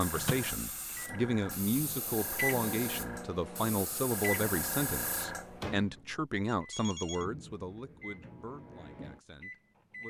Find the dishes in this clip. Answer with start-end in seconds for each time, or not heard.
not heard.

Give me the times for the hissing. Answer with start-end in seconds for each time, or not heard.
0.0-5.7.